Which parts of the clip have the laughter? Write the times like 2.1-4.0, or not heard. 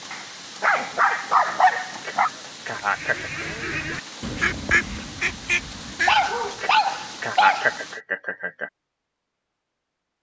2.0-3.5, 6.5-8.7.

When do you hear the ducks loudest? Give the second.
5 s.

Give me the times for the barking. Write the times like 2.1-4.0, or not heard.
0.1-2.3, 6.0-7.8.